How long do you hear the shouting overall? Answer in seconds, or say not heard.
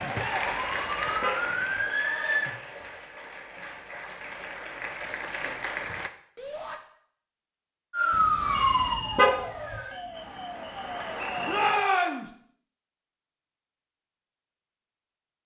2 s.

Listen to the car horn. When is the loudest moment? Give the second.
9 s.